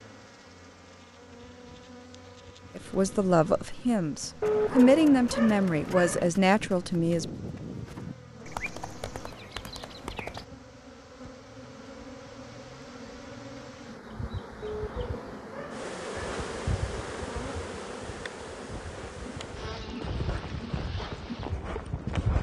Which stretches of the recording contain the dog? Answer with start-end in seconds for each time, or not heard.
4.4-6.2, 14.6-16.1.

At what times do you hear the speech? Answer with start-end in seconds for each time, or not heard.
2.8-7.2.